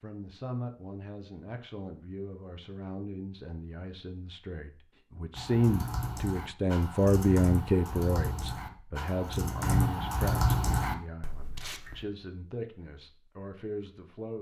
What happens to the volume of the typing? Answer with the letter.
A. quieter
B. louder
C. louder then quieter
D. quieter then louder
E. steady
B.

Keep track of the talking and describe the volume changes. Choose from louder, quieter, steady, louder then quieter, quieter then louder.
louder then quieter.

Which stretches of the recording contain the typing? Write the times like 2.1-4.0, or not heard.
5.3-12.1.